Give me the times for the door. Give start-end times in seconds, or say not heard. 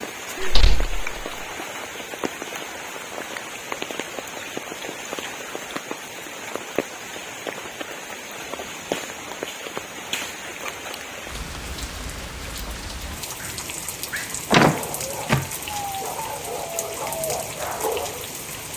0.4-1.2, 14.5-15.5.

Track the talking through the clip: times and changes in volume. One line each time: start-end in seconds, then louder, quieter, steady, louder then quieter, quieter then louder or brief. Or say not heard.
not heard.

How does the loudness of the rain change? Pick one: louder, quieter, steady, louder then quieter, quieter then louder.
steady.